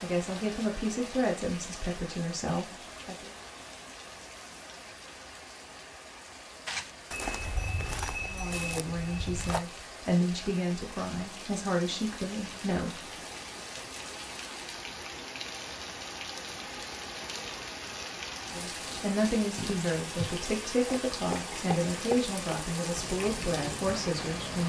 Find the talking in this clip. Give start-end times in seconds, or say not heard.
0.0-3.3, 8.2-13.0, 18.5-24.6.